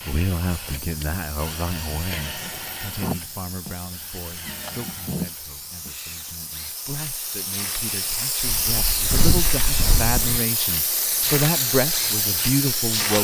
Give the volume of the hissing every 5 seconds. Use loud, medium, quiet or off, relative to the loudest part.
quiet, loud, loud.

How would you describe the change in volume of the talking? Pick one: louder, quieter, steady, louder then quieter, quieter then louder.
quieter then louder.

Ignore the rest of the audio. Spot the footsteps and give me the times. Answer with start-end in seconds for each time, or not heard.
8.3-10.4.